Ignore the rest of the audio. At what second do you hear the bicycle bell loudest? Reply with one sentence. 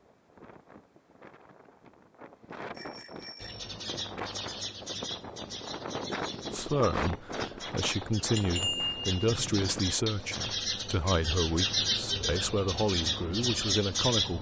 The volume of the bicycle bell peaks at 9 seconds.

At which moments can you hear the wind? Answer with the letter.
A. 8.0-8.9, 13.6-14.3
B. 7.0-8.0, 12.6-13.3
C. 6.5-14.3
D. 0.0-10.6
D.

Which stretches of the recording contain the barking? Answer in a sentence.
You can't hear the barking here.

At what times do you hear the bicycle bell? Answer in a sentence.
The bicycle bell can be heard from 2.7 to 3.7 s and from 8.3 to 9.1 s.